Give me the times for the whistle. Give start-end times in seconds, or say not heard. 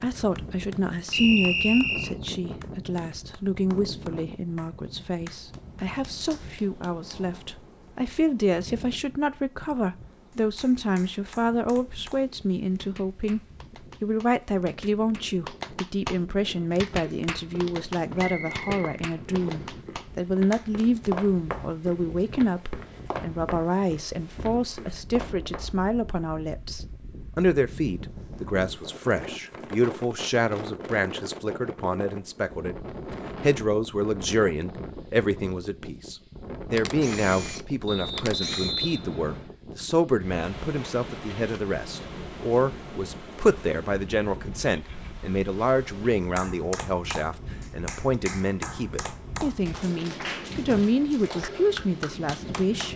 1.1-2.1, 18.1-19.7, 37.9-39.5.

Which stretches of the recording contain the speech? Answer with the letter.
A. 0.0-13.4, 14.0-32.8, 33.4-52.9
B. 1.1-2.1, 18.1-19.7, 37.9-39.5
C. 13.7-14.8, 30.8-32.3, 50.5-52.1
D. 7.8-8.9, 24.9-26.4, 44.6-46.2
A.